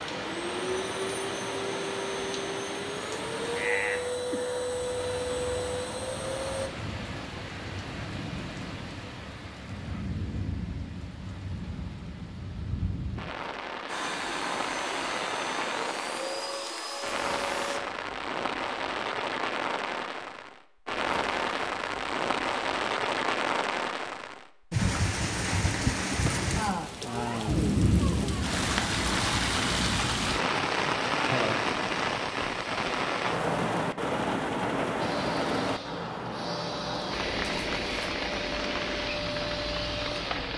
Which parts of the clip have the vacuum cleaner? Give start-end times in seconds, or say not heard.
0.0-6.7, 13.8-17.8, 35.0-40.5.